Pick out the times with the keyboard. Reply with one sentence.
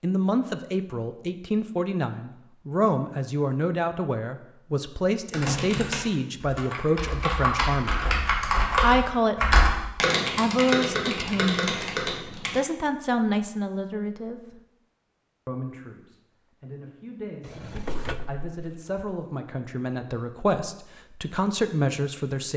You can hear the keyboard from 5.3 to 12.6 s.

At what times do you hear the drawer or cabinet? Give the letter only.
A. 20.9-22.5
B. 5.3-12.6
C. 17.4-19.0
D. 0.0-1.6
C.